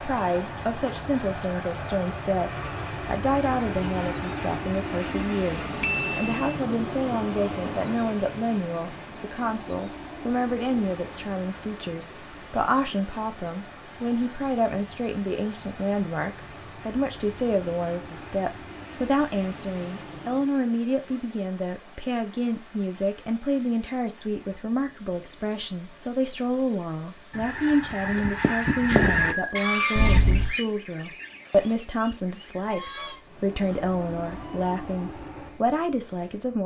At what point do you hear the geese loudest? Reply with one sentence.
The loudest moment of the geese is at 29 seconds.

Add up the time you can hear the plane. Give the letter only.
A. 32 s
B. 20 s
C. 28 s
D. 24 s
D.